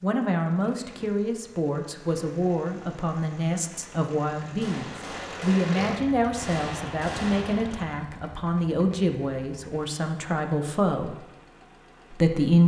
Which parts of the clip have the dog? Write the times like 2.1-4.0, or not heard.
not heard.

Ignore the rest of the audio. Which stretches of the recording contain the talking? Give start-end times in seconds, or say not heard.
0.0-11.2, 12.1-12.6.